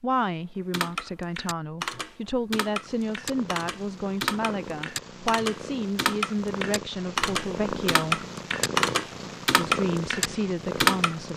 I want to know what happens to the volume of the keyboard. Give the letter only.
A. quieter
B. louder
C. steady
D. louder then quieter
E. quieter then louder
B.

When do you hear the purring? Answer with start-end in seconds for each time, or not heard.
2.6-11.3.